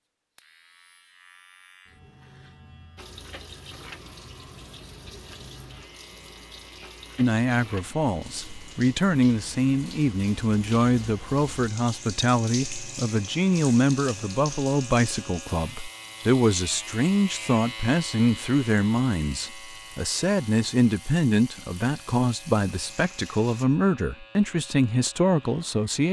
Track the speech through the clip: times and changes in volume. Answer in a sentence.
The speech can be heard from 7.2 to 26.0 s, at a steady volume.